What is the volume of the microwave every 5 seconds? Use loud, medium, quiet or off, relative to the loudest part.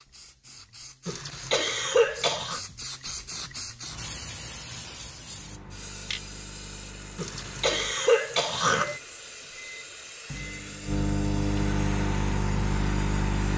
off, quiet, loud.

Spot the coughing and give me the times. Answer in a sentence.
The coughing can be heard from 1.1 to 2.6 s and from 7.2 to 8.9 s.